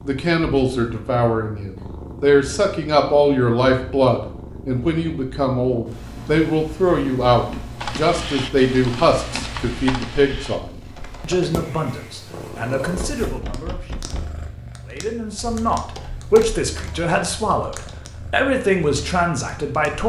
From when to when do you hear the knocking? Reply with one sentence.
The knocking can be heard from 12.9 to 14.7 s.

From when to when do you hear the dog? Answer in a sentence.
The dog can't be heard in this clip.